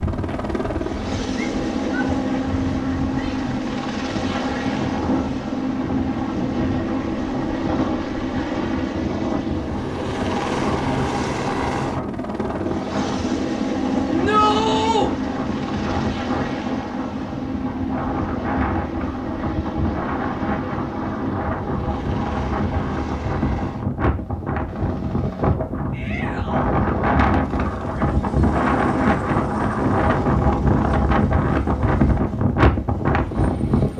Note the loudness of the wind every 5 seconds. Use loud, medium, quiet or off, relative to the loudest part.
quiet, medium, medium, medium, medium, loud, loud.